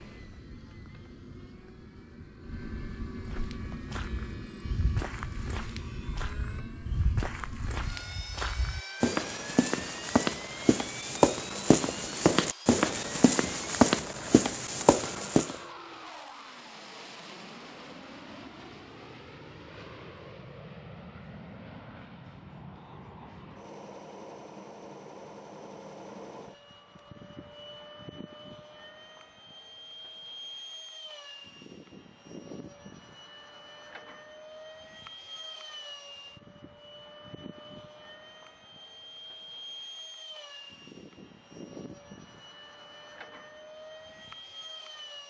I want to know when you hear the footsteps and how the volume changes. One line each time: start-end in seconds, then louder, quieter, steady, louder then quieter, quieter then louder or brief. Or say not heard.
3.2-15.6 louder.